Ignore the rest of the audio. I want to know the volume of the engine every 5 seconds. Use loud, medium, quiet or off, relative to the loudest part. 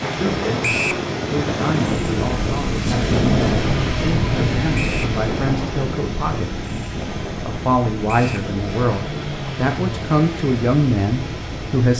loud, medium, medium.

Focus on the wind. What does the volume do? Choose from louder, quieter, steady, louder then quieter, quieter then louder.
quieter.